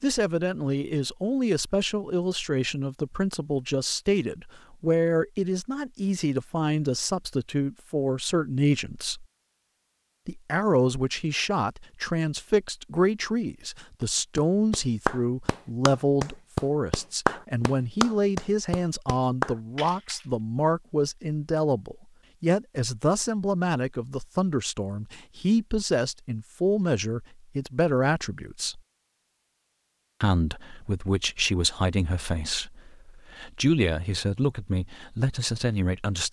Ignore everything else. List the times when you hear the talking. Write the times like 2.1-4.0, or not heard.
0.0-9.2, 10.2-28.8, 30.2-36.2.